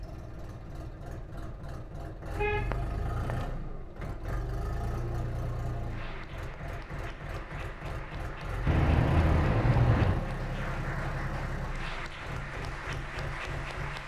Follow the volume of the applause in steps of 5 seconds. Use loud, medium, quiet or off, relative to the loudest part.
off, medium, loud.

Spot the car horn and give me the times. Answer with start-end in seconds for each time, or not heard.
2.4-3.3, 8.7-10.2.